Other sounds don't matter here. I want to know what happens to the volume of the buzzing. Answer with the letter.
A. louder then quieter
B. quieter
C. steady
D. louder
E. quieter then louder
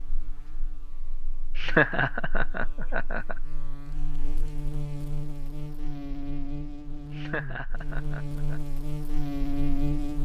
D.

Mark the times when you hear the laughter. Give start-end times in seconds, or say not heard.
1.6-3.4, 7.1-8.6.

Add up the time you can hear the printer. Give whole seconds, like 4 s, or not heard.
not heard.